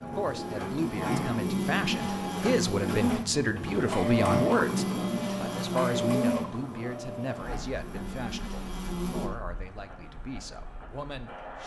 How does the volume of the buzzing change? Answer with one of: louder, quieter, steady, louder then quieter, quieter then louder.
quieter.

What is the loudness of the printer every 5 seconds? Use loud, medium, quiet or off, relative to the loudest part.
loud, loud, medium.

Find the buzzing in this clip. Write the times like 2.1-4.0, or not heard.
0.0-9.3.